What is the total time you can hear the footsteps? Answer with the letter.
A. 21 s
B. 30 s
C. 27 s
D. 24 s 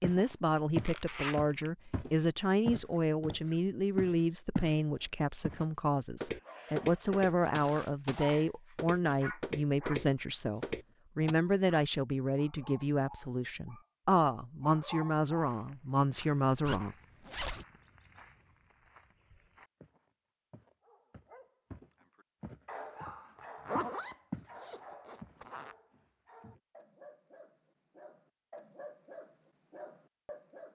A.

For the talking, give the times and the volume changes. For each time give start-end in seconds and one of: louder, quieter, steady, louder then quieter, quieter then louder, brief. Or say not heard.
0.0-16.9 steady.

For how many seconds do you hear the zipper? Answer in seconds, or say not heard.
4 s.